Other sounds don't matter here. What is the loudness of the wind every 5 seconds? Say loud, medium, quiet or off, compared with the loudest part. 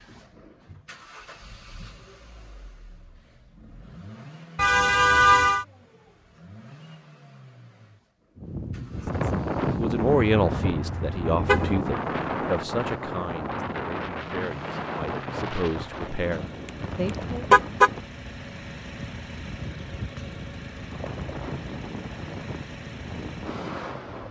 off, loud, loud, medium, medium.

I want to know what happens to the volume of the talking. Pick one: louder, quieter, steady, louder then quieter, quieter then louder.
quieter then louder.